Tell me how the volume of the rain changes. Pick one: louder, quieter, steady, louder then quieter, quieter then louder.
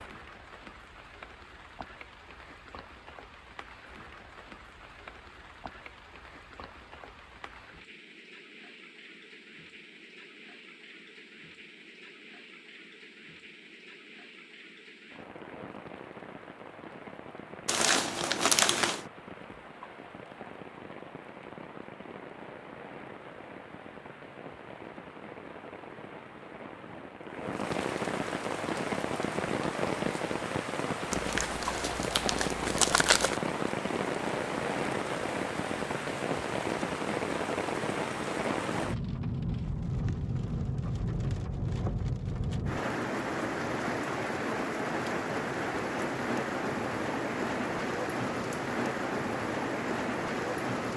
louder.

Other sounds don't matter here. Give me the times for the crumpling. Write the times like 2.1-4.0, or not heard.
17.6-19.1, 31.1-33.4.